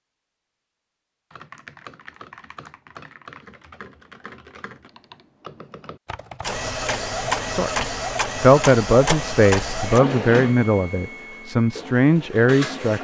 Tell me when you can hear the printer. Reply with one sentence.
You can hear the printer from 6.4 to 12.9 s.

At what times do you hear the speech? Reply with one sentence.
You can hear the speech from 7.5 to 12.9 s.